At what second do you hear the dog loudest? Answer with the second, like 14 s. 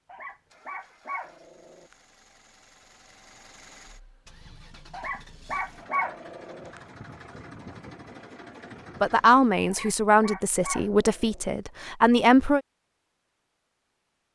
6 s.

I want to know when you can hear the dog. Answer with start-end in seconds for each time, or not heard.
0.1-1.9, 4.9-6.8, 9.7-11.4.